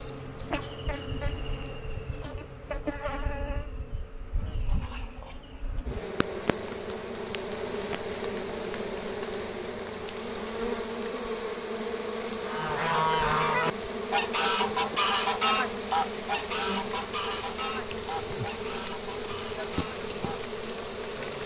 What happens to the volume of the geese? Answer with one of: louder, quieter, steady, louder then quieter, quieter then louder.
quieter.